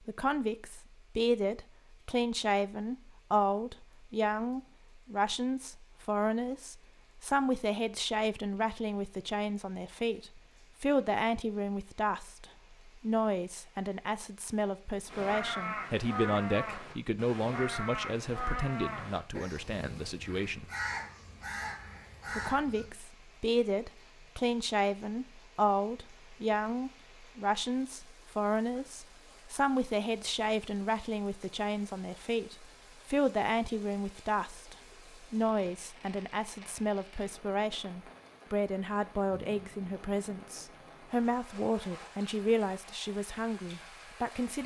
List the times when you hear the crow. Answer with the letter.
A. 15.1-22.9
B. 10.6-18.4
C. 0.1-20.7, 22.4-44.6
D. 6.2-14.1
A.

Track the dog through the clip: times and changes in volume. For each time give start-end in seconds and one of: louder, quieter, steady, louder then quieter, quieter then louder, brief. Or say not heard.
not heard.